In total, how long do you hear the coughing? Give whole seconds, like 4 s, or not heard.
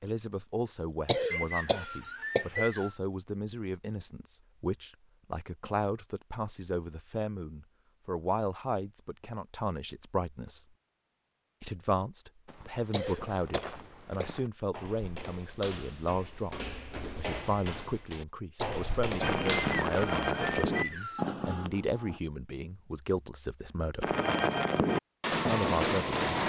5 s.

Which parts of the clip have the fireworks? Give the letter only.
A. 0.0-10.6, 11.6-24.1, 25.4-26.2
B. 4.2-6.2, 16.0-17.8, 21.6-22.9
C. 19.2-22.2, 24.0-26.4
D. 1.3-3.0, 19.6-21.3
C.